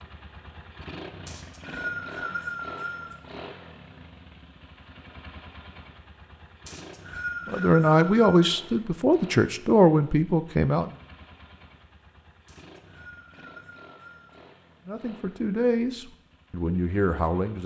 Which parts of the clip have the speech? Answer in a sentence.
The speech can be heard from 7.5 to 10.9 s and from 14.8 to 17.6 s.